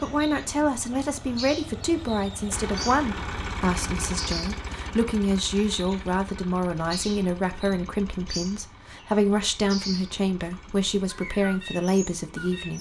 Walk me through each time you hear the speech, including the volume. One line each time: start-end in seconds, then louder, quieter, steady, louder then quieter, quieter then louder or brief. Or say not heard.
0.0-12.7 steady.